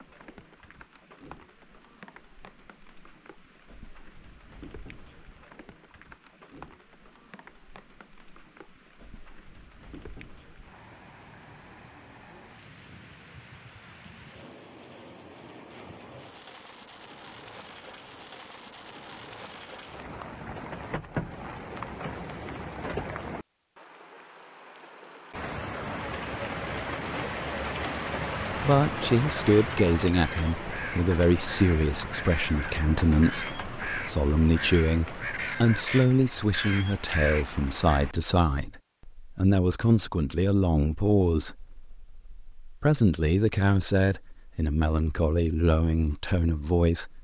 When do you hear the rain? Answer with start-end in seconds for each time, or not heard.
0.0-38.1.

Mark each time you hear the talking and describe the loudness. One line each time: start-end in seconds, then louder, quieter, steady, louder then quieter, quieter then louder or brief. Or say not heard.
28.6-47.1 steady.